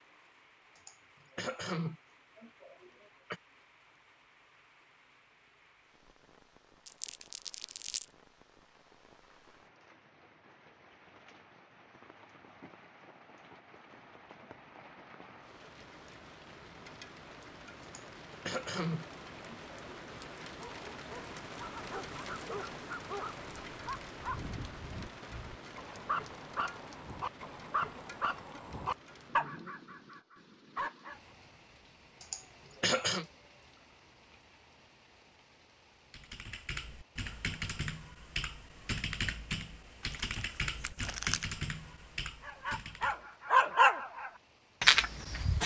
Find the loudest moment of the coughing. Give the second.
33 s.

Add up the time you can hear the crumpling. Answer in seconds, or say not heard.
3 s.